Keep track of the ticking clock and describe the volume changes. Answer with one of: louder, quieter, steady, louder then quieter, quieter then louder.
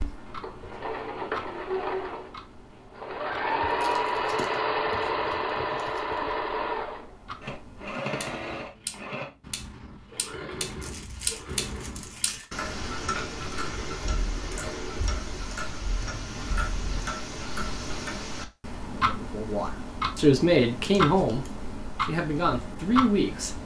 louder.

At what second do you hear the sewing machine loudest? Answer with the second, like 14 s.
4 s.